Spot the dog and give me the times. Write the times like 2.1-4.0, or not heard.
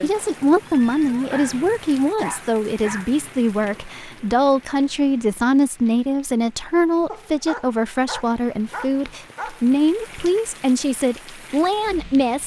1.2-3.1, 7.0-9.6.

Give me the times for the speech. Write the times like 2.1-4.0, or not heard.
0.0-12.4.